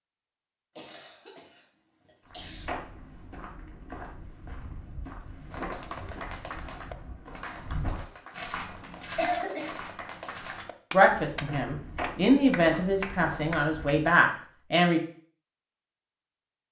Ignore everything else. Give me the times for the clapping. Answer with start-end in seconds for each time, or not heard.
5.5-14.0.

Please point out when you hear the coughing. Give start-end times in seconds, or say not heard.
0.8-2.7, 9.2-9.8.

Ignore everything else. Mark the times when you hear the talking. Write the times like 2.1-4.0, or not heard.
10.9-15.0.